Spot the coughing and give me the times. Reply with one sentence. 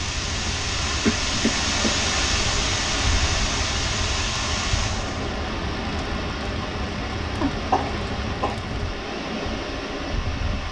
You can hear the coughing from 0.8 to 2.0 s and from 7.4 to 8.6 s.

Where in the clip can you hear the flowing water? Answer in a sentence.
The flowing water can be heard from 0.0 to 10.6 s.